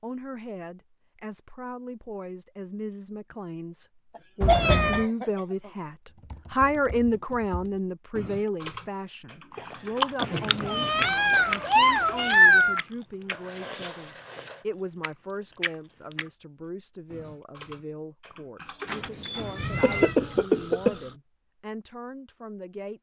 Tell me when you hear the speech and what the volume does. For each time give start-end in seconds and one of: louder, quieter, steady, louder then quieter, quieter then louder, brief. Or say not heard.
0.0-22.9 louder then quieter.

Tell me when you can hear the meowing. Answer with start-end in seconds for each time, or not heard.
4.4-5.0, 10.2-12.8, 18.9-20.1.